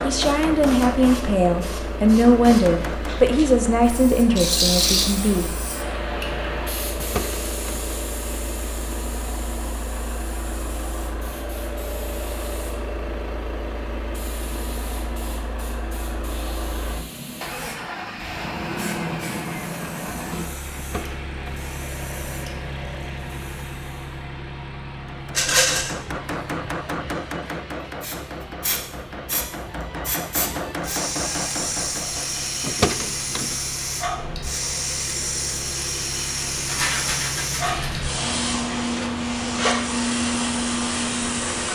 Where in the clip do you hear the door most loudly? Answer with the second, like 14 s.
33 s.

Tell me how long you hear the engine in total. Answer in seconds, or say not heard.
42 s.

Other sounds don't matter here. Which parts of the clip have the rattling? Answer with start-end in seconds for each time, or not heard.
4.3-5.0, 25.4-25.9, 36.6-38.0.